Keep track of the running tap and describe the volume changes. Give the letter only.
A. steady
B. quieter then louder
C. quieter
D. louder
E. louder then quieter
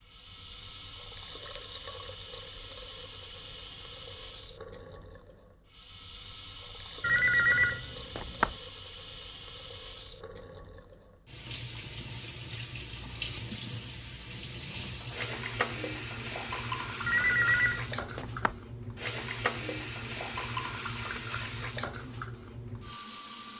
A.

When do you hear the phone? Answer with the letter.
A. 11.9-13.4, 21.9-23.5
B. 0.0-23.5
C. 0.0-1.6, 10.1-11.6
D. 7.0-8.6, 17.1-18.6
D.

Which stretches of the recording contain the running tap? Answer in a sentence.
The running tap can be heard from 0.0 to 23.5 s.